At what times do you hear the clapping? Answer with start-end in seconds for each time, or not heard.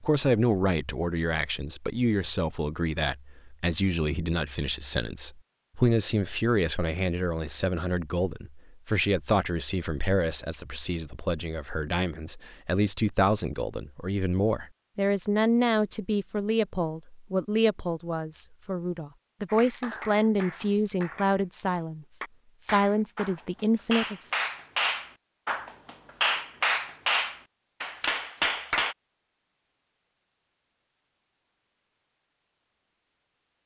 19.4-28.9.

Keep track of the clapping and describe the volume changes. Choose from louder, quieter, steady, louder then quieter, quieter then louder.
louder.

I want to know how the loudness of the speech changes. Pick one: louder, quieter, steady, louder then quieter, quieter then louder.
steady.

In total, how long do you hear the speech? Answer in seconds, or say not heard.
24 s.